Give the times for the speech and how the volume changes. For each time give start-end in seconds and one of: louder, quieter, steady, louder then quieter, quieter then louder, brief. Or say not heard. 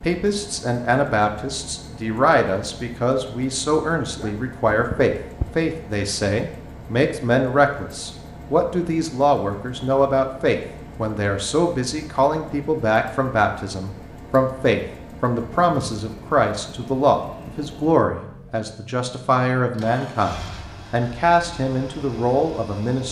0.0-23.0 steady.